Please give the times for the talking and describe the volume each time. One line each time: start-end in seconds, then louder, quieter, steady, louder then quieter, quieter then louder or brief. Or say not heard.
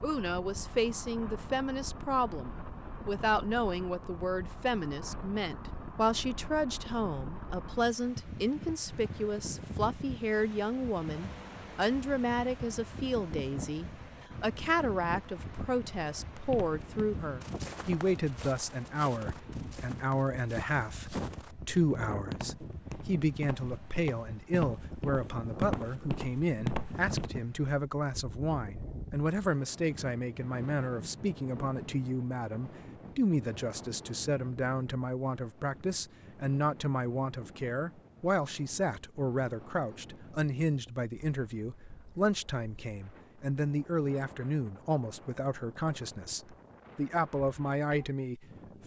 0.0-48.8 steady.